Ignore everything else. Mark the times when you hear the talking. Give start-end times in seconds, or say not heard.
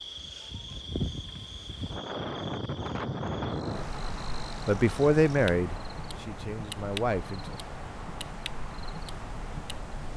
4.7-7.5.